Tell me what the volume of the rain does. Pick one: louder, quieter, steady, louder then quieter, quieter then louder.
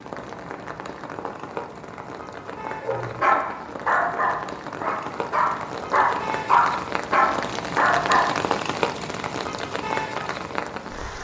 louder.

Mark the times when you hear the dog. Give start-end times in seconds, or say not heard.
2.8-8.3.